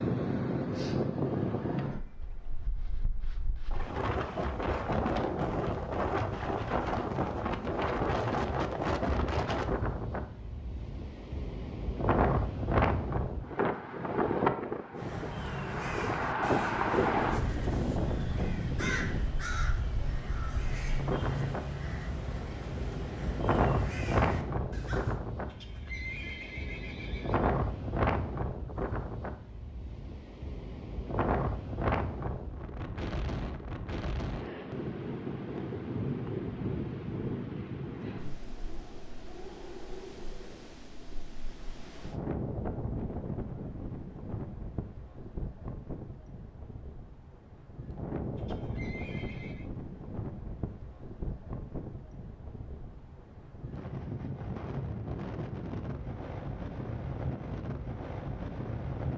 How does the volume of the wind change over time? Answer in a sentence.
The volume of the wind goes down.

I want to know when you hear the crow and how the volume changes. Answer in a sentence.
The crow can be heard from 14.9 to 25.2 s, at a steady volume.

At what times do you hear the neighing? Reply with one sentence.
You can hear the neighing from 25.4 to 27.5 s and from 48.4 to 49.7 s.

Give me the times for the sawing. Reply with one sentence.
You can't hear the sawing here.